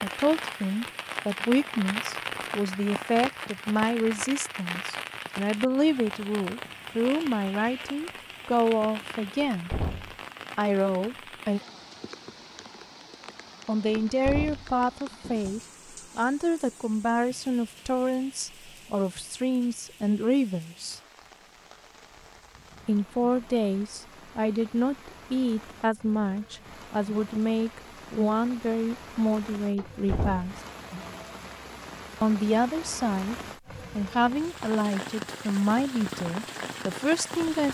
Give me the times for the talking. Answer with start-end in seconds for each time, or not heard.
0.0-9.7, 10.6-11.6, 13.7-21.0, 22.9-30.6, 32.2-33.4, 34.0-37.6.